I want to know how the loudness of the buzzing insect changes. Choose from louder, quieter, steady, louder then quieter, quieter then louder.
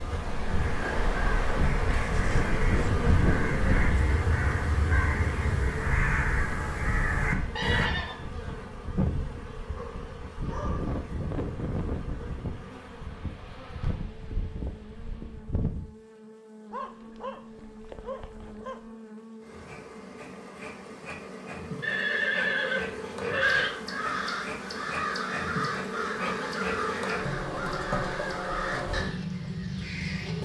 quieter then louder.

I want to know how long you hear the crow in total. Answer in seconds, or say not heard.
14 s.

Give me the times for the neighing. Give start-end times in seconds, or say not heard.
7.5-8.2, 21.8-23.7.